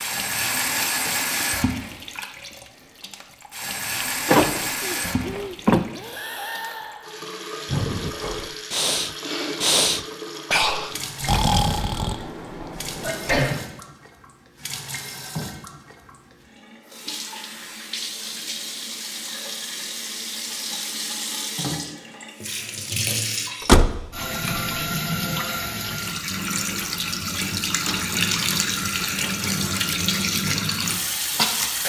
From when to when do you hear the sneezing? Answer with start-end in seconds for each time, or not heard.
12.6-13.6.